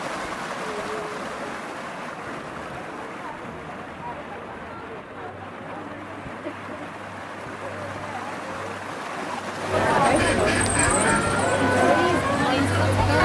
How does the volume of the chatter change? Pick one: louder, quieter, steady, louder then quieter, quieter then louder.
louder.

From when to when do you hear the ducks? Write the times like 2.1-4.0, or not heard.
10.0-11.3.